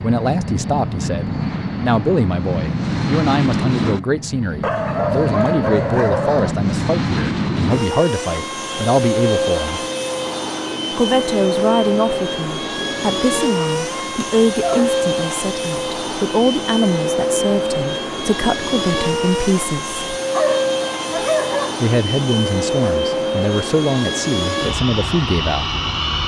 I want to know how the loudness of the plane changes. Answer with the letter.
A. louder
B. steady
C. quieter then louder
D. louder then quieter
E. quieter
B.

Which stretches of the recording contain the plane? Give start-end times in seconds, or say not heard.
0.0-26.2.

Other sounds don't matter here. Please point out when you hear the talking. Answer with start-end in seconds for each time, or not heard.
0.0-9.8, 10.9-19.9, 21.8-25.8.